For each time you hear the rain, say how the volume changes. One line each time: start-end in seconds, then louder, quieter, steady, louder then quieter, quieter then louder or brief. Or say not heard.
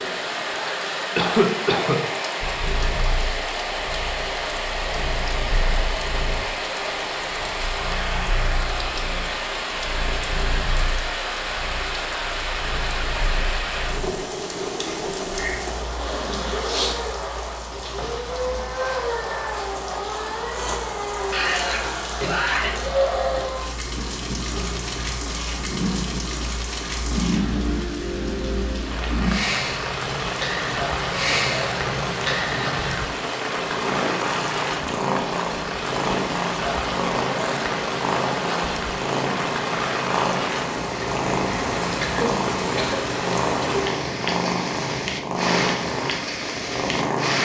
0.0-47.3 steady.